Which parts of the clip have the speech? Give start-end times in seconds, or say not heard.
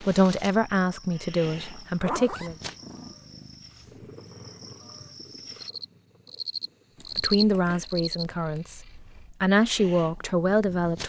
0.0-2.5, 7.2-11.0.